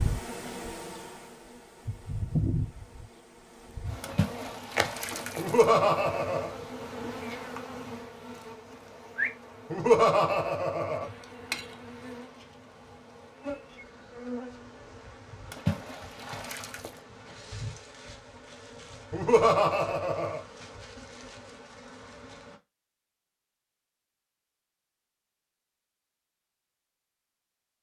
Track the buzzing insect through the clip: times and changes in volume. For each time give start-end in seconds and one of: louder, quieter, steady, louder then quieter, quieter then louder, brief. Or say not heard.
0.0-22.6 quieter.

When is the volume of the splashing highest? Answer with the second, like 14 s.
16 s.